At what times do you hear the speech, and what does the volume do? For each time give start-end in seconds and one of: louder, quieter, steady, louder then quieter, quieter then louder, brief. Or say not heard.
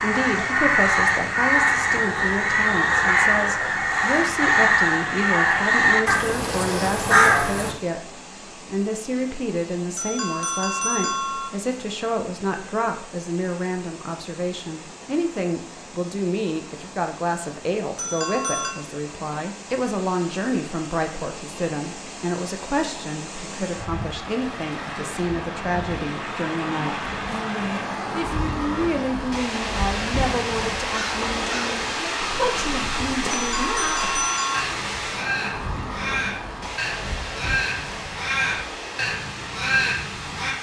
0.0-34.0 steady.